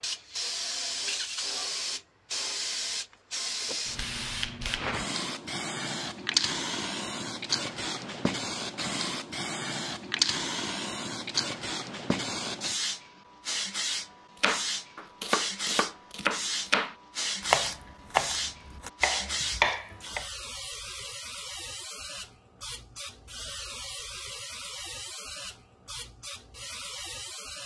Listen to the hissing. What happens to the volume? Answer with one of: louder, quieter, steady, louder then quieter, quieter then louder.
quieter.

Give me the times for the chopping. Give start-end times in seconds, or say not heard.
14.4-20.2.